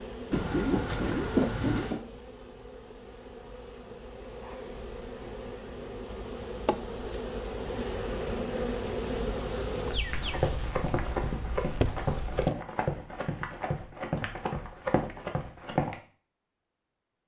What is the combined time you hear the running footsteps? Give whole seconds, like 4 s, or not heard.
6 s.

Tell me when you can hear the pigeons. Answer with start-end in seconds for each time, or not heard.
0.3-2.0.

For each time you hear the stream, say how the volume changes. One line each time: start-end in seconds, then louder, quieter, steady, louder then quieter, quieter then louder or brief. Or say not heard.
not heard.